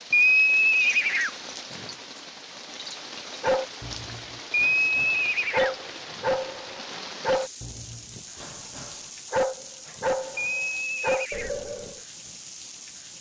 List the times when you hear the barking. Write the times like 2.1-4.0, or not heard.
3.4-12.0.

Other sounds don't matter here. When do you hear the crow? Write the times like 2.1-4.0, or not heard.
not heard.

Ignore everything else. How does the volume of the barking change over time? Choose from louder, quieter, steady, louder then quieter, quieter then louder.
louder.